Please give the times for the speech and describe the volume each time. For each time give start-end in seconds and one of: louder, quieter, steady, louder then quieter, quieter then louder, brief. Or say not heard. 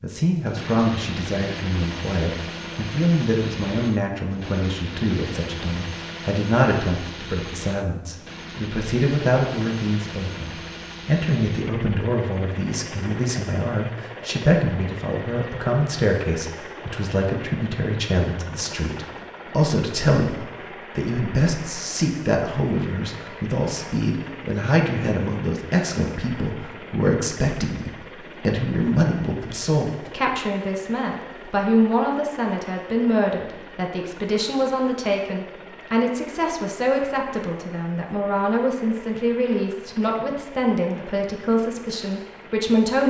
0.0-43.0 steady.